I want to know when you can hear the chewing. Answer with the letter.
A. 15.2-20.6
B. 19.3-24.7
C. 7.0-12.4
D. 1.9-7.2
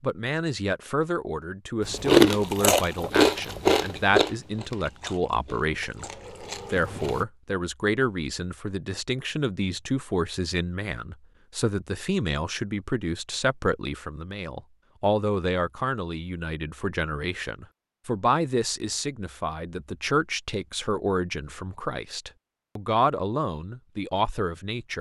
D.